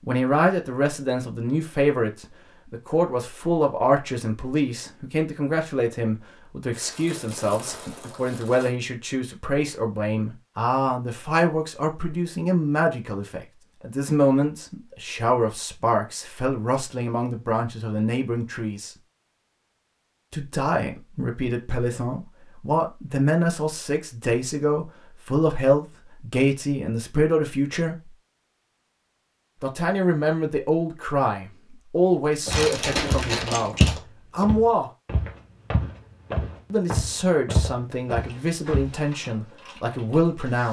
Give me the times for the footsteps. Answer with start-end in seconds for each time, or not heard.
32.5-39.0.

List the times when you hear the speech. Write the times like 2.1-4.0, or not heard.
0.0-18.9, 20.3-28.1, 29.6-34.9, 36.7-40.6.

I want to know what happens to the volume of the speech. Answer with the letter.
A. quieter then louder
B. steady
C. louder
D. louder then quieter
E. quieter
B.